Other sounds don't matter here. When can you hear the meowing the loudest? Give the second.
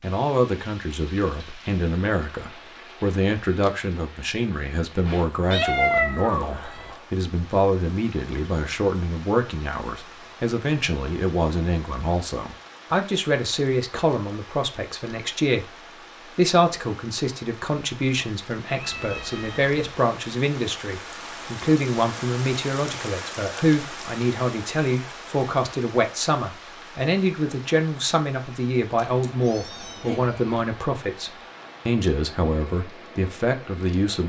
6 s.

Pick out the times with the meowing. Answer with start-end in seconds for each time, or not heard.
5.0-6.9, 18.8-19.8, 28.9-30.6.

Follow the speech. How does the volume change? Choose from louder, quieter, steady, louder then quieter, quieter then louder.
steady.